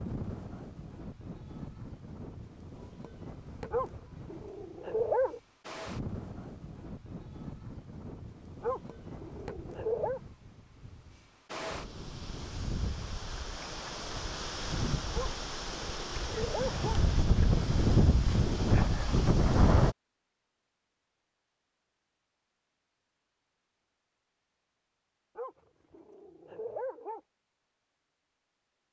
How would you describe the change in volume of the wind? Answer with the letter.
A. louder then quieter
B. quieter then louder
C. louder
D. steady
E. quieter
C.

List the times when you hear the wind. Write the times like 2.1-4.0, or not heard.
0.0-19.9.